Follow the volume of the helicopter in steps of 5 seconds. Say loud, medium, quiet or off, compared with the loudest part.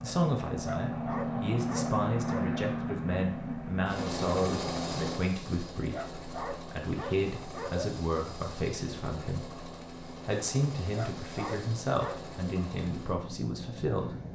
loud, medium, medium.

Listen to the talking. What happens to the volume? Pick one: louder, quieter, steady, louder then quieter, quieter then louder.
steady.